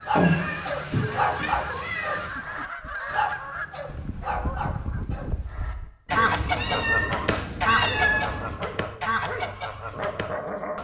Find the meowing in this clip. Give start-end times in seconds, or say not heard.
0.1-2.3, 6.0-8.6.